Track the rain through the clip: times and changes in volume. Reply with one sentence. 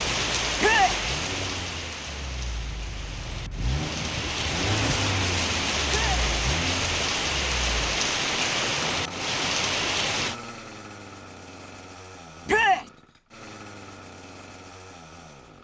You can hear the rain from 0.0 to 10.3 s, getting quieter then louder.